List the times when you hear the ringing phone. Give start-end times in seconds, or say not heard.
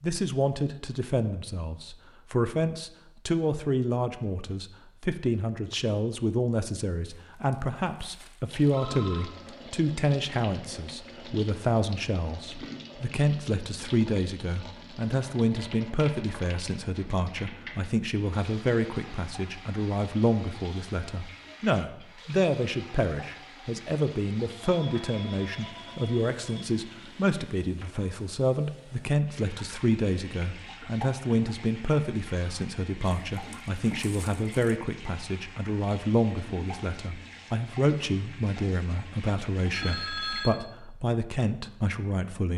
8.7-9.3, 24.6-26.6, 39.7-40.5.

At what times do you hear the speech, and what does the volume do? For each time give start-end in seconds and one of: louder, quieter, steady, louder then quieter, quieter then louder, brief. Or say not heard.
0.0-42.5 steady.